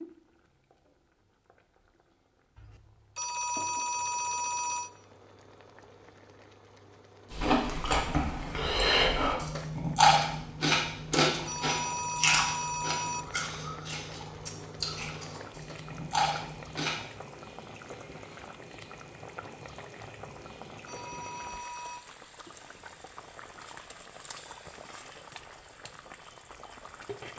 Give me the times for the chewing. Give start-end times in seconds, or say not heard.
7.3-17.0.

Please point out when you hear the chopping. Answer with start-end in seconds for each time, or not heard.
not heard.